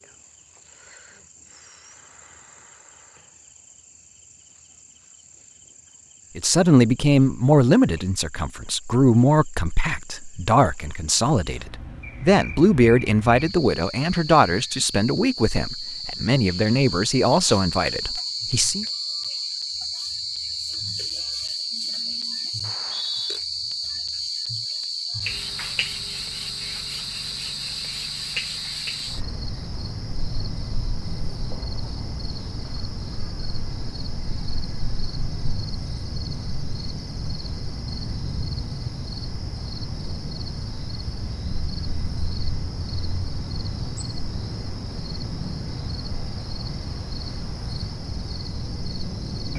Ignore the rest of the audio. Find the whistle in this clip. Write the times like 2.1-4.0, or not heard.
22.6-23.4.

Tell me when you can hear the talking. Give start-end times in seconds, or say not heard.
6.3-18.9.